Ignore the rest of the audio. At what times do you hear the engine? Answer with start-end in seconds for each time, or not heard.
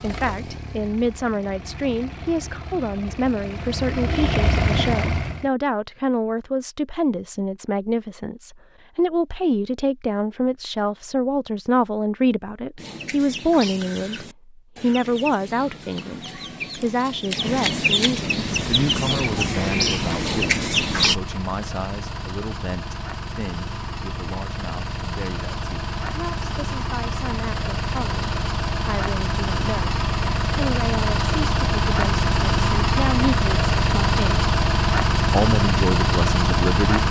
0.0-5.5, 18.3-37.0.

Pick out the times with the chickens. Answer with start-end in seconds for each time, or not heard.
12.8-21.1.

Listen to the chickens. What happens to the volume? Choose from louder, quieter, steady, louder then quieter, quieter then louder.
louder.